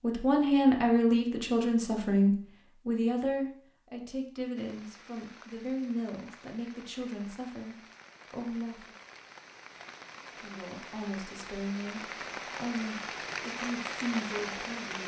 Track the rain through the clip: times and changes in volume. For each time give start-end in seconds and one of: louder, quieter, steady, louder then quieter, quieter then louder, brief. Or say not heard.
4.5-15.0 louder.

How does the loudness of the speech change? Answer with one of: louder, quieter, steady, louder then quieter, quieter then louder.
quieter.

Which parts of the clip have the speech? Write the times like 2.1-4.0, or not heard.
0.0-8.9, 10.4-15.0.